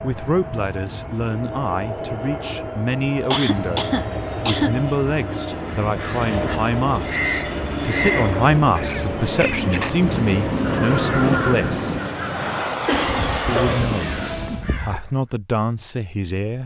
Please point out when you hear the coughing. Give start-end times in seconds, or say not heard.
3.3-4.7, 12.8-13.8.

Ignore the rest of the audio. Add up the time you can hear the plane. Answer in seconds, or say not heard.
15 s.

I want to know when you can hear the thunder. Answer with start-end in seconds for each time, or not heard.
9.9-11.9.